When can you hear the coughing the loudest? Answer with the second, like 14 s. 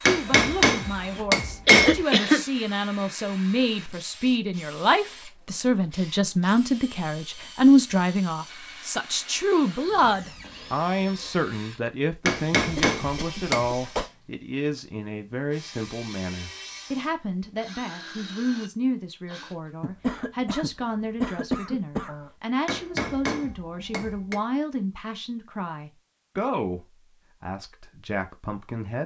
2 s.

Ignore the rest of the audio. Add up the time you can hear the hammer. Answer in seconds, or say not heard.
5 s.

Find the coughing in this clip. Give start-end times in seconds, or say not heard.
1.6-2.5, 12.8-14.1, 19.8-22.3.